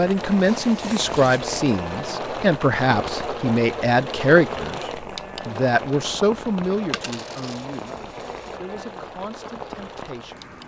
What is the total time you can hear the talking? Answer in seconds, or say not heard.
10 s.